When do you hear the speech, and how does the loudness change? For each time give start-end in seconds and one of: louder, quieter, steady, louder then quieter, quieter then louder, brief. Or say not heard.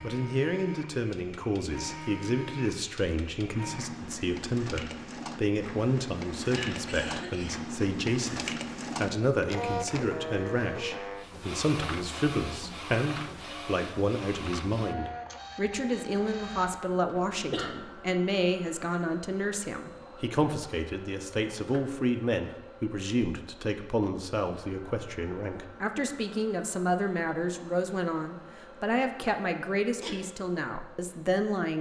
0.0-31.7 steady.